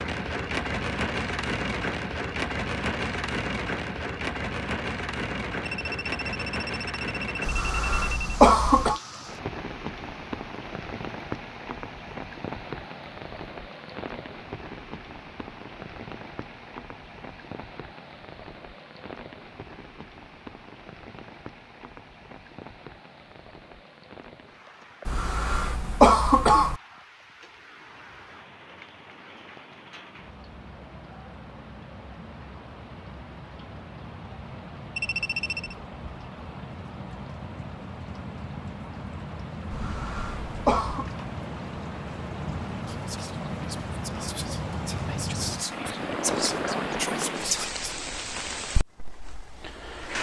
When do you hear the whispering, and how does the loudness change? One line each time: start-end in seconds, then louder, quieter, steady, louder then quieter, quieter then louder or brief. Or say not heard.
42.9-47.9 louder.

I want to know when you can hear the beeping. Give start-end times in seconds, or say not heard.
5.7-8.2, 35.0-35.8.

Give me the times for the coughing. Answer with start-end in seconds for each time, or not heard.
7.5-9.0, 25.1-26.8, 39.7-41.0.